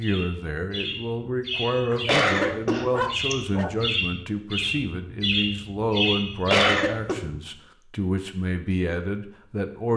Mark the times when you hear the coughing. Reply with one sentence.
You can hear the coughing from 1.5 to 3.4 s and from 5.9 to 7.2 s.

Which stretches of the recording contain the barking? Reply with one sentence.
The barking can be heard from 1.9 to 3.9 s.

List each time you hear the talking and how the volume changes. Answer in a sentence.
You can hear the talking from 0.0 to 9.9 s, at a steady volume.